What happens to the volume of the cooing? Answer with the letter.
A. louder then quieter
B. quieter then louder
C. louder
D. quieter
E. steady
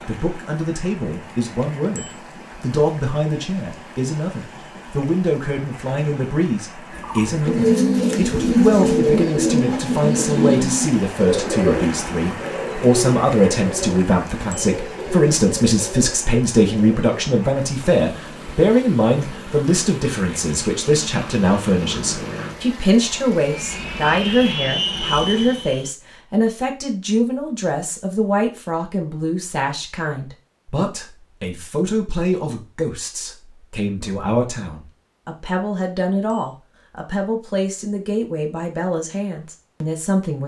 D.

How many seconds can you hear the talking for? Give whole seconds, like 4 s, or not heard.
40 s.